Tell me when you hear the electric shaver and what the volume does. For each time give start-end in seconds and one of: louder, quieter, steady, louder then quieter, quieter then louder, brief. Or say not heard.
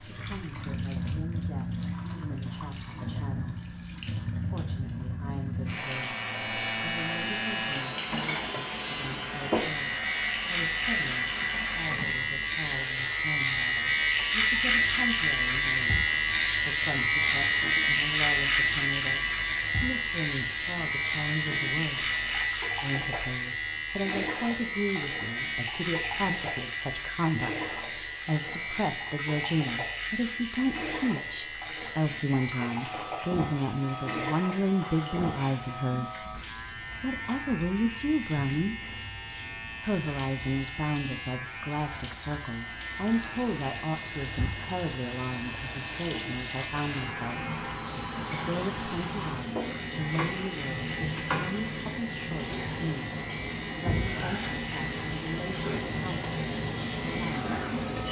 5.7-58.0 quieter.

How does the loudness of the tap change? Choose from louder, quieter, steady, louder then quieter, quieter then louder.
quieter then louder.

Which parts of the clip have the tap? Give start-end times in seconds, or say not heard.
0.0-58.0.